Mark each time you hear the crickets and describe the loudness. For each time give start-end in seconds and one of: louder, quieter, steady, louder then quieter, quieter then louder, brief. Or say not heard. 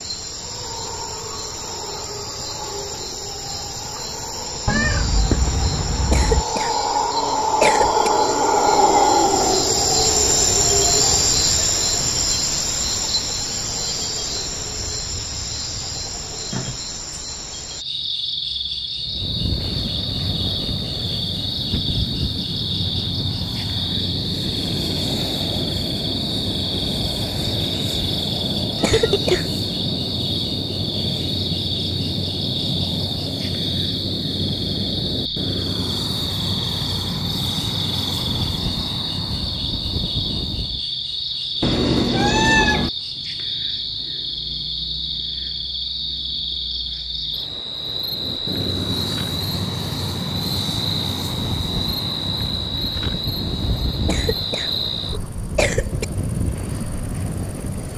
0.0-57.9 quieter.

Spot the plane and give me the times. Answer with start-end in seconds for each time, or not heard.
18.9-40.9, 48.0-57.9.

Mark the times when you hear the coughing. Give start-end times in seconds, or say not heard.
6.1-8.1, 28.8-29.5, 54.0-56.0.